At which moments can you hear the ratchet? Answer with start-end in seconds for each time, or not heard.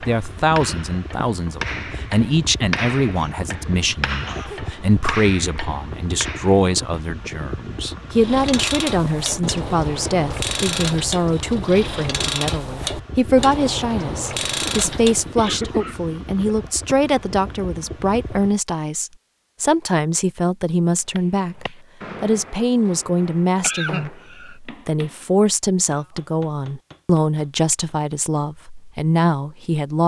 8.2-15.3.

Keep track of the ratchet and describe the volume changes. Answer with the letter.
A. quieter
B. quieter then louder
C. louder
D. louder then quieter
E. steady
E.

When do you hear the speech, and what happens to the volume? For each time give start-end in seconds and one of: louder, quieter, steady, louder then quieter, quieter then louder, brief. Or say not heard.
0.0-30.0 steady.